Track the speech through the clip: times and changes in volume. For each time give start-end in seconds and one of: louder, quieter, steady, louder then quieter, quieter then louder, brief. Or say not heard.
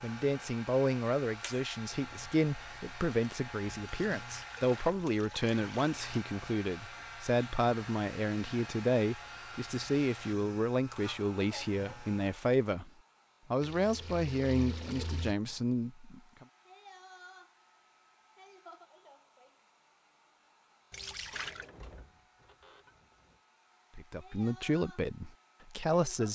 0.0-12.9 steady
13.5-16.4 brief
23.9-26.2 brief.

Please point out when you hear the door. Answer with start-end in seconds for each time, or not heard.
21.3-23.4.